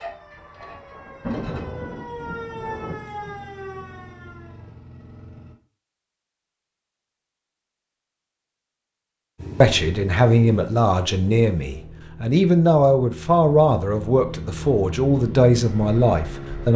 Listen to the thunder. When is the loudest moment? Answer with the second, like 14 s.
1 s.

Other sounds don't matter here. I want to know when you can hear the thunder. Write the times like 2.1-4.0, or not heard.
0.3-3.6.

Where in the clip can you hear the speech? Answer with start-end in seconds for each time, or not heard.
9.6-16.7.